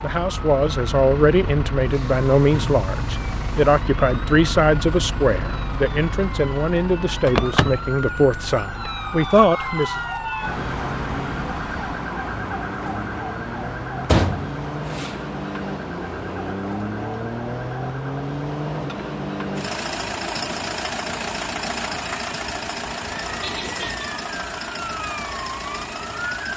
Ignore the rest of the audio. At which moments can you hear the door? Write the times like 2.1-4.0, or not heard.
7.2-7.8, 14.1-15.2.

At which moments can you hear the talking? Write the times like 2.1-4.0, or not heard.
0.0-10.0.